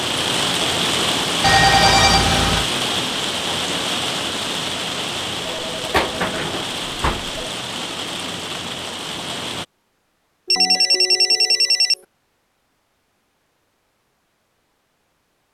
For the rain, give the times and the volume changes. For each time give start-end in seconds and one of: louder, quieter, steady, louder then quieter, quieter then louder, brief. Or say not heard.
0.0-9.7 quieter.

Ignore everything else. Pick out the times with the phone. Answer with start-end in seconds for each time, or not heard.
1.4-2.6, 5.5-7.4, 10.4-11.9.